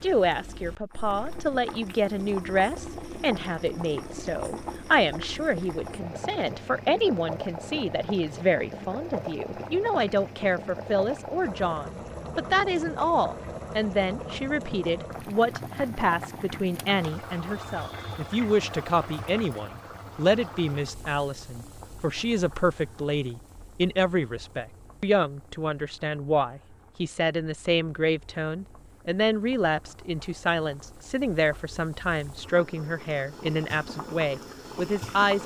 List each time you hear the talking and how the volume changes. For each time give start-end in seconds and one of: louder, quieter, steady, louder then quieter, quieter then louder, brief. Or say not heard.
0.0-35.4 steady.